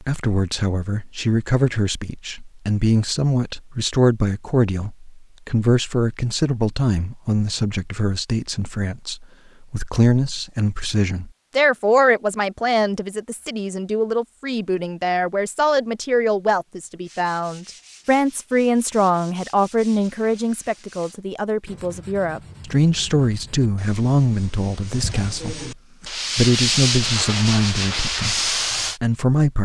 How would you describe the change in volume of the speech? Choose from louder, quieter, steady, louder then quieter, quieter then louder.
steady.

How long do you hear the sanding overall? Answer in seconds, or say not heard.
12 s.